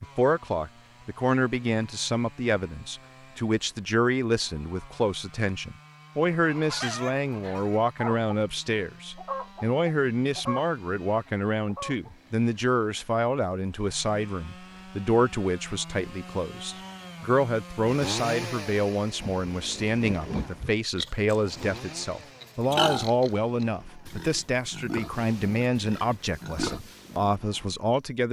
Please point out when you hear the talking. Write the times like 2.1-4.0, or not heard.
0.0-28.2.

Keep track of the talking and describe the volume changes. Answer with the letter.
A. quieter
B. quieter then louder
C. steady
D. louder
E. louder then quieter
C.